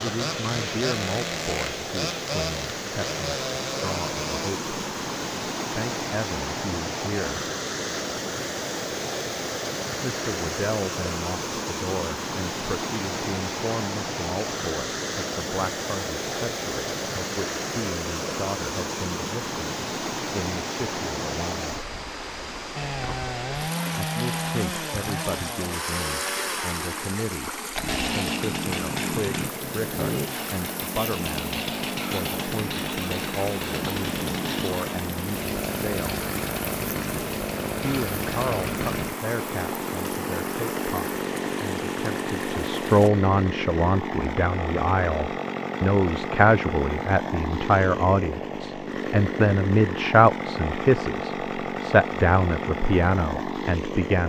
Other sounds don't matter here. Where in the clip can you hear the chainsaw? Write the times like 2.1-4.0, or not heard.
0.0-4.5, 22.8-54.2.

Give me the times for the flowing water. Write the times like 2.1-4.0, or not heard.
0.0-43.1.